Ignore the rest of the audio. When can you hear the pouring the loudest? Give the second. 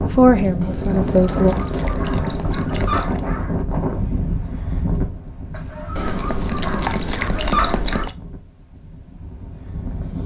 7 s.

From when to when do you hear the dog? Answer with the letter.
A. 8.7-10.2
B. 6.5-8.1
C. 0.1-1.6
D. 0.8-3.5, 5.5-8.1
D.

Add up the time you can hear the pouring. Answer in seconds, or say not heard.
5 s.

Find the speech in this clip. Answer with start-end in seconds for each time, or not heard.
0.1-1.6.